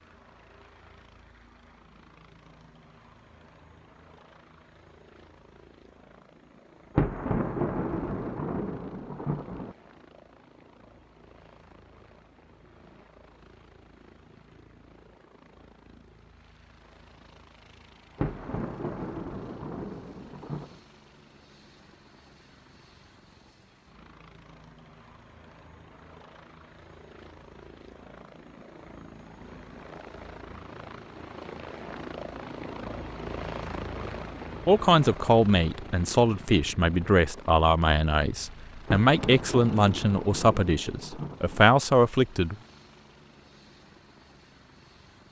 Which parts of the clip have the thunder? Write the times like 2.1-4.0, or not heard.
7.0-9.8, 18.1-20.8, 38.9-41.6.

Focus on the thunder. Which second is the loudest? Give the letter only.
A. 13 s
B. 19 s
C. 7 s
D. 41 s
C.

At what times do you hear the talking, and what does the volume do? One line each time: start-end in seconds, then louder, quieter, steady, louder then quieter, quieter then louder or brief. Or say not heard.
34.6-42.5 steady.